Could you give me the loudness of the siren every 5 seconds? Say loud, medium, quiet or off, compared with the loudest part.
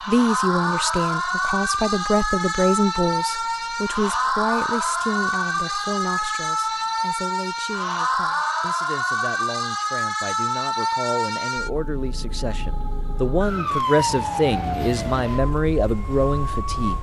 loud, loud, loud, medium.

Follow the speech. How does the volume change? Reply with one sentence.
The volume of the speech goes down, then up.